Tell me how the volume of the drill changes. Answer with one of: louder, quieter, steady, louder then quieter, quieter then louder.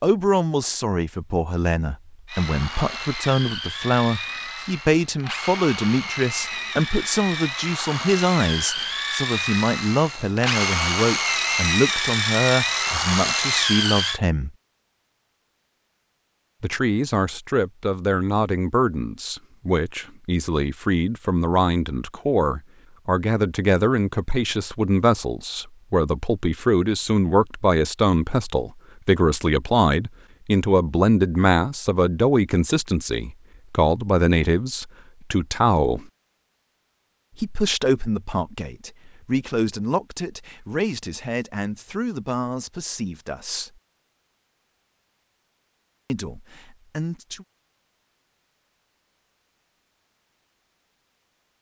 louder.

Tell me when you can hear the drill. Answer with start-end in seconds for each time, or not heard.
2.2-14.2.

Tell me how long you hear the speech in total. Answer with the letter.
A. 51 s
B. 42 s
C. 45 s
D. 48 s
B.